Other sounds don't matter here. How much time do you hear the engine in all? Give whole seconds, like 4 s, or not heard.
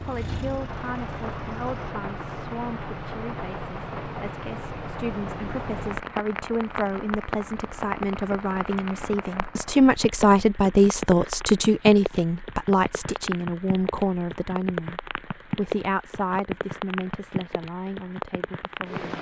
2 s.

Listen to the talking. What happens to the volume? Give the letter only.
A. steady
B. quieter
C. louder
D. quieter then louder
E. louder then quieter
E.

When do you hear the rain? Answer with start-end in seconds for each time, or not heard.
0.0-19.1.